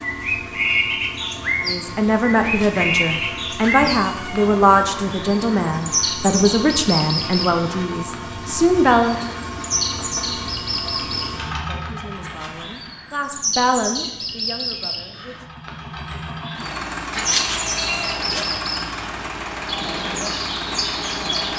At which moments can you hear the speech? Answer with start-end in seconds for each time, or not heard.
1.6-9.2, 11.7-15.4.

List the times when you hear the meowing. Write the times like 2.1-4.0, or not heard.
2.4-4.7, 12.2-12.8, 17.1-18.5.